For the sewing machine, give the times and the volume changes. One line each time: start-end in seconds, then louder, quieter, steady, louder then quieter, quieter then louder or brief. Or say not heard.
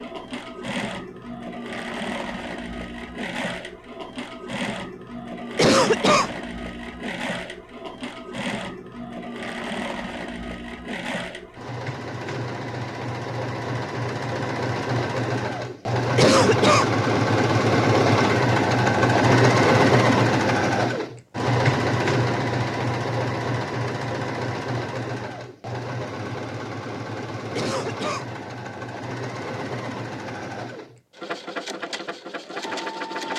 0.0-33.3 louder then quieter.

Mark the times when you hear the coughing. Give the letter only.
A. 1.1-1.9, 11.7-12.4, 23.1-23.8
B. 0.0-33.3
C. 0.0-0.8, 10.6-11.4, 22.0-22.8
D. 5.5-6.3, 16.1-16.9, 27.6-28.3
D.